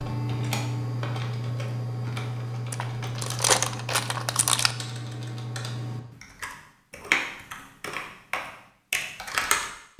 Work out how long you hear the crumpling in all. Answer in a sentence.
You can hear the crumpling for 2 seconds altogether.